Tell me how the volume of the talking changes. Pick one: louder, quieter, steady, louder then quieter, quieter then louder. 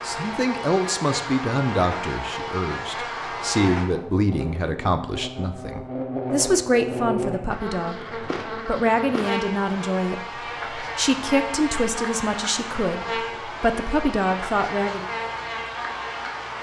steady.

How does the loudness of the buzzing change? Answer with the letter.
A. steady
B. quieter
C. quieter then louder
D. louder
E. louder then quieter
A.